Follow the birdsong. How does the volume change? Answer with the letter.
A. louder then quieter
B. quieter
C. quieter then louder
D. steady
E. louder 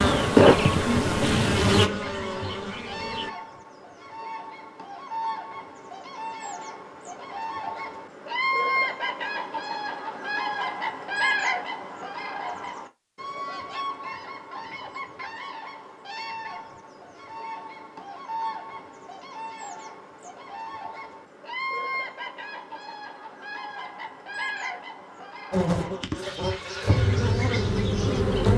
A.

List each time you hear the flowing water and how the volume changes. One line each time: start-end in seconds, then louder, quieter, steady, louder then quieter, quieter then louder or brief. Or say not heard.
not heard.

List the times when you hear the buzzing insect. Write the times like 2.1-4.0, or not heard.
0.0-3.3, 25.5-28.5.